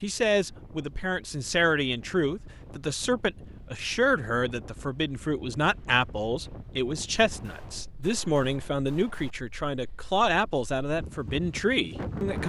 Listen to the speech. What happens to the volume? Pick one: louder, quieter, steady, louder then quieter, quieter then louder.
steady.